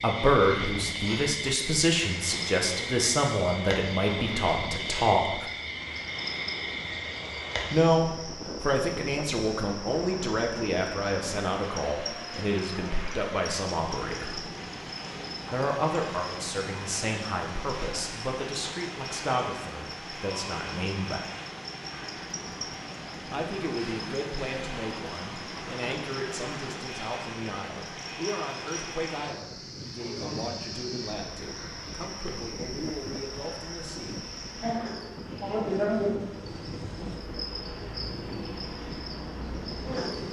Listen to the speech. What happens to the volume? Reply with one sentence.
The volume of the speech goes down.